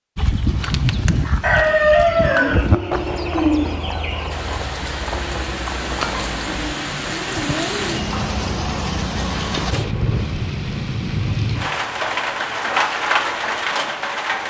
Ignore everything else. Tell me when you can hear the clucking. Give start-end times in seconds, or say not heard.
1.4-4.3.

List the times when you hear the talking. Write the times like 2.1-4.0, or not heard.
not heard.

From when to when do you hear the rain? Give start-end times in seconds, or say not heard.
4.3-14.4.